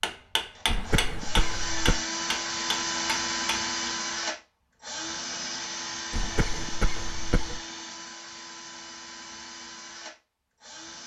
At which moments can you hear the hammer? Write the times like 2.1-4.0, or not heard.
0.0-3.7.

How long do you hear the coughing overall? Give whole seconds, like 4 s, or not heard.
3 s.